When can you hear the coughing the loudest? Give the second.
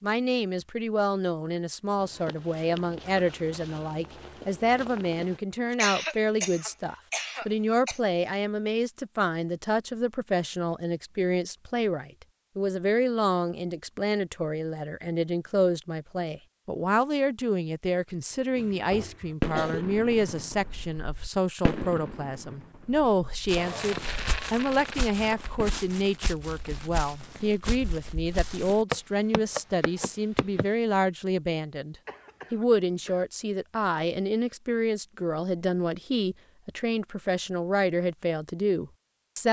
6 s.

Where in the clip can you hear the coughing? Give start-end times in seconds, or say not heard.
5.7-8.0, 18.6-19.9, 32.0-33.2.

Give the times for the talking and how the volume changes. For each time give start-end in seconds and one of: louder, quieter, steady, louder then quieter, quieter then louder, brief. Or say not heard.
0.0-39.4 steady.